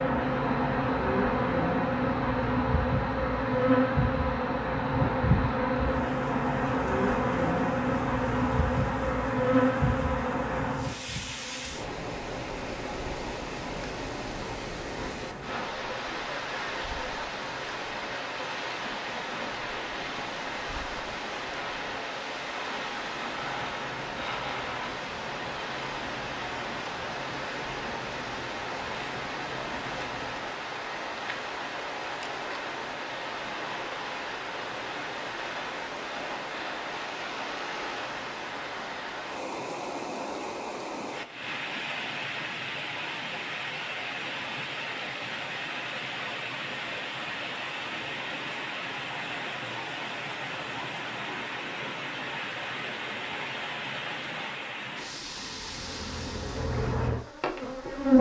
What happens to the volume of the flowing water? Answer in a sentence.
The volume of the flowing water goes up.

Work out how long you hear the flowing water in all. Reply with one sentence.
You can hear the flowing water for 58 seconds altogether.